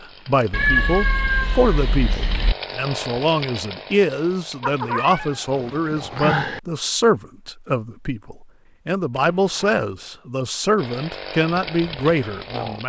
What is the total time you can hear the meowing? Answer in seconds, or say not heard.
5 s.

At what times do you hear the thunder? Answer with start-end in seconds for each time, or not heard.
not heard.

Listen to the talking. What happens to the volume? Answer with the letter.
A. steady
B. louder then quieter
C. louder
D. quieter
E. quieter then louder
A.